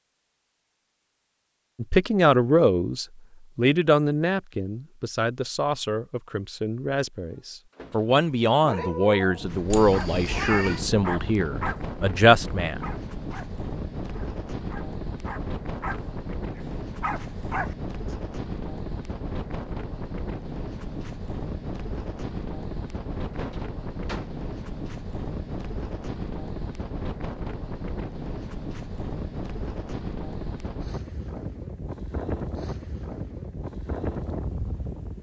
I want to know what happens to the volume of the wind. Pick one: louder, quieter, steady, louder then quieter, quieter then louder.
steady.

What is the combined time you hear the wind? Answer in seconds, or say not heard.
26 s.